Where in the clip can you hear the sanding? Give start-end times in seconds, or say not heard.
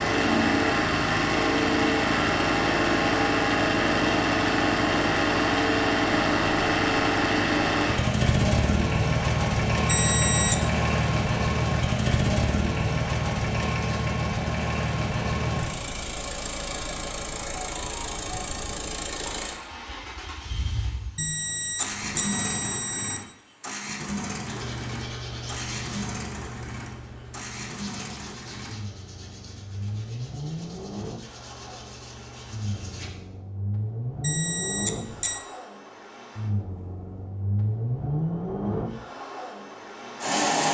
24.1-33.1.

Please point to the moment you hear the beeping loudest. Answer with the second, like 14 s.
10 s.